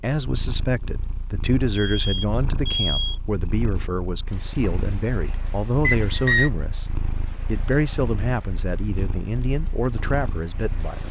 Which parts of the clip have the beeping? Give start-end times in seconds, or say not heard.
1.7-3.2, 5.8-6.5.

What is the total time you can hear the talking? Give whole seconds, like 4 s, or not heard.
11 s.